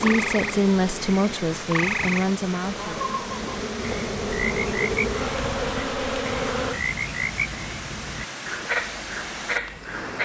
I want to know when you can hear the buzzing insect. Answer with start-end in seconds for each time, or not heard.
0.0-6.8.